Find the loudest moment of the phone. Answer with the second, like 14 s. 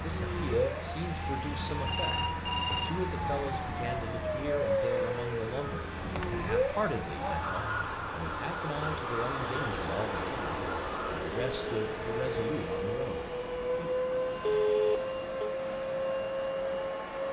15 s.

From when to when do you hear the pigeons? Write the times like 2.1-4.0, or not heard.
not heard.